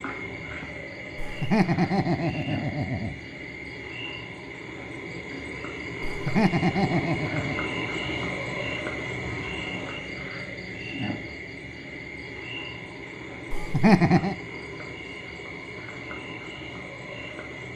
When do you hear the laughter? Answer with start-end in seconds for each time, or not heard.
1.1-3.1, 6.0-7.7, 13.5-14.3.